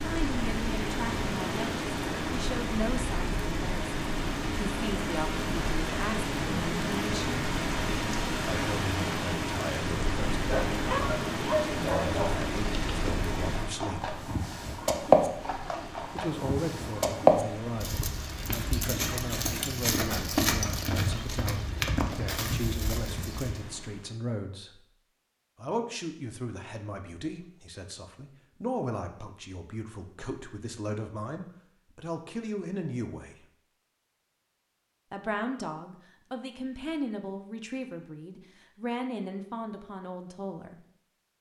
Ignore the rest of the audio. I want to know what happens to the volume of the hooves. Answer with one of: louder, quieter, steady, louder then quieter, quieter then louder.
louder then quieter.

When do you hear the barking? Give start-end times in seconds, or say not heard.
10.4-12.2.